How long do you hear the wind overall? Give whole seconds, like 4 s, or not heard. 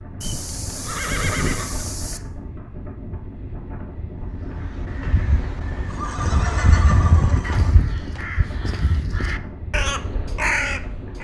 11 s.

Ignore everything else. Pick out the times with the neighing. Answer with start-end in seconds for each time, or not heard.
0.2-2.2, 5.8-8.2.